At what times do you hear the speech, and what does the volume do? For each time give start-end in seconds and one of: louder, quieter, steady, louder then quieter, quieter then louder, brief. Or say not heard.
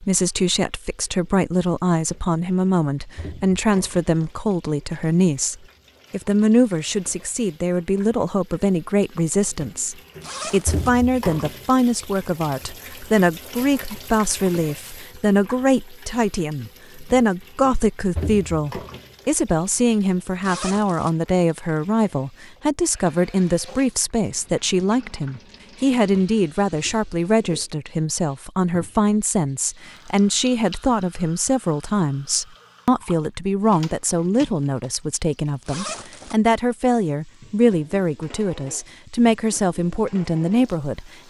0.0-41.2 steady.